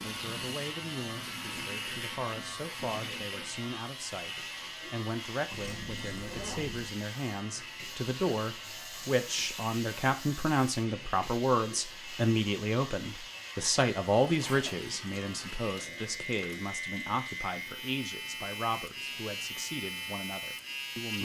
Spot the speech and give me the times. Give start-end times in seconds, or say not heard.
0.0-21.1.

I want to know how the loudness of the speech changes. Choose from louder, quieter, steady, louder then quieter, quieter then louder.
louder then quieter.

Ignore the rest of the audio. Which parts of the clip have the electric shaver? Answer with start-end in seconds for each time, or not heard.
0.0-21.1.